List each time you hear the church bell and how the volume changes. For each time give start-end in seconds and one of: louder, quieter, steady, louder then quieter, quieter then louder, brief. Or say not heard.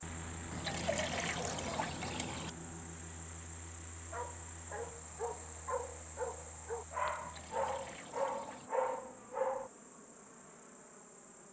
not heard.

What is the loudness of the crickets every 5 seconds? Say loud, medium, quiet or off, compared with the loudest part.
loud, loud, medium.